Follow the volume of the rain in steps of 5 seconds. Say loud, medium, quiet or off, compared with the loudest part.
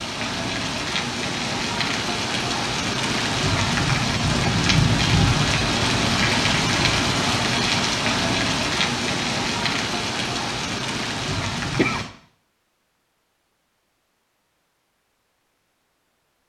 loud, loud, medium, off.